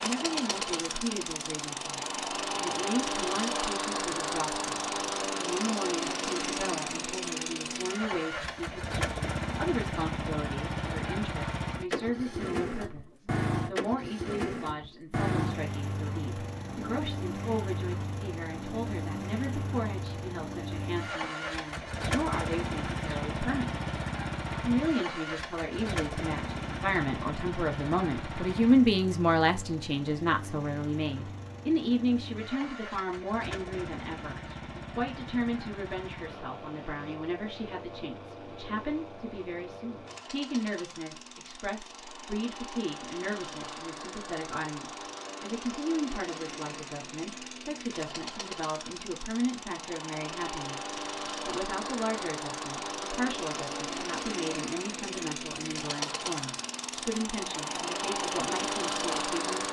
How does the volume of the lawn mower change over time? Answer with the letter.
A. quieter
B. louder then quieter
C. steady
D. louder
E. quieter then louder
E.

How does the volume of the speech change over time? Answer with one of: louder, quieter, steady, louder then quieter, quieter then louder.
louder then quieter.